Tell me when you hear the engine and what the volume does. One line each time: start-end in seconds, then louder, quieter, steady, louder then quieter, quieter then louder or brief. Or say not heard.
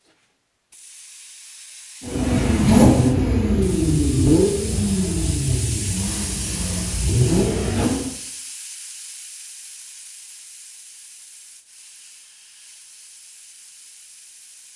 2.0-8.1 quieter then louder.